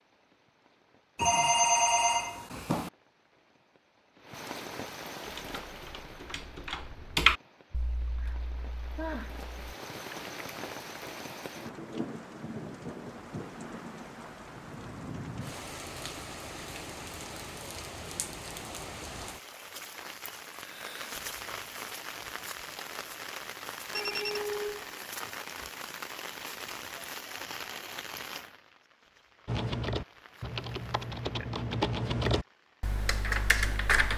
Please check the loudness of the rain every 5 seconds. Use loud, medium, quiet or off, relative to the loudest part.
medium, medium, loud, loud, loud, loud, quiet.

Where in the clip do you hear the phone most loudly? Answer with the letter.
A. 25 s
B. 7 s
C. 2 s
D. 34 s
C.